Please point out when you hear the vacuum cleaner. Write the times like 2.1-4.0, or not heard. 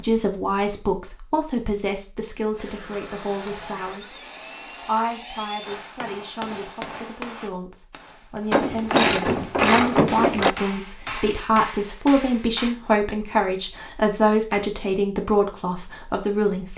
2.5-5.8.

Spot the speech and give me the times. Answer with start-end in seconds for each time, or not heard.
0.0-16.7.